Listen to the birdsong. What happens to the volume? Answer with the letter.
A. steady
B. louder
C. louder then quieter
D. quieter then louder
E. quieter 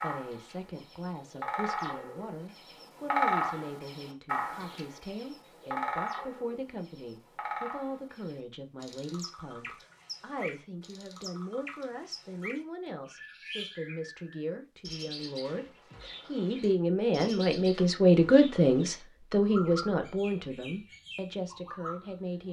E.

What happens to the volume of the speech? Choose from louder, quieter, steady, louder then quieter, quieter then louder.
louder.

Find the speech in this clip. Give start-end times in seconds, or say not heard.
0.0-22.4.